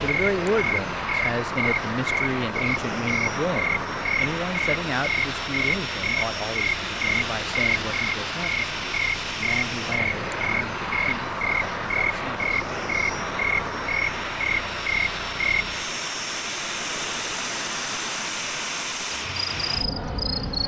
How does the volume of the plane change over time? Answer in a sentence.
The loudness of the plane stays about the same.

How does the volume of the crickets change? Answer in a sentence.
The volume of the crickets goes down.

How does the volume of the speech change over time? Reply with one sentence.
The volume of the speech goes down.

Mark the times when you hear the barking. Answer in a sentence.
The barking can't be heard in this clip.